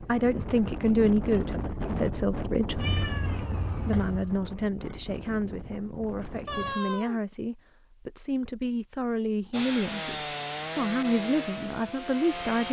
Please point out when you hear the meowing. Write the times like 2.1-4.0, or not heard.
2.8-4.3, 6.5-7.2.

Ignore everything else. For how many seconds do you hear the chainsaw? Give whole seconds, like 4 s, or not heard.
3 s.